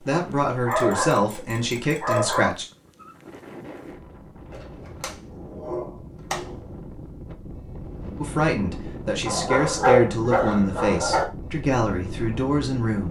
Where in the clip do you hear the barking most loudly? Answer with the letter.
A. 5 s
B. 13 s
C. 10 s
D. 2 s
C.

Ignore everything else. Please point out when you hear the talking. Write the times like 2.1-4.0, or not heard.
0.1-2.6, 8.2-13.0.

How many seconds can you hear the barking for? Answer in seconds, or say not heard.
6 s.